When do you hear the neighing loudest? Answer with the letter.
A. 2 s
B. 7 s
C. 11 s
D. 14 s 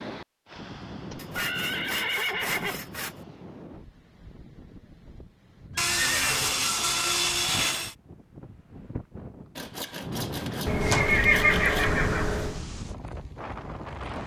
C.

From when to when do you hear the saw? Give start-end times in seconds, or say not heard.
1.1-3.2, 5.8-8.0, 9.6-11.9.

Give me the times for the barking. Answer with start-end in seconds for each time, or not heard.
not heard.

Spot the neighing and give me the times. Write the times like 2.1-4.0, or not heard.
1.1-2.8, 5.9-7.0, 10.7-12.6.